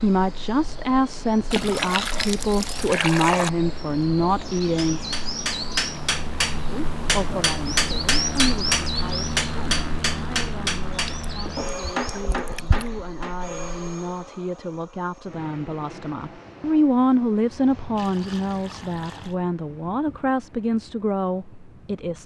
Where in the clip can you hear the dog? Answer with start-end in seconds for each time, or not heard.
not heard.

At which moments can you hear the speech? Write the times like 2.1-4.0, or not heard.
0.0-5.0, 6.7-22.2.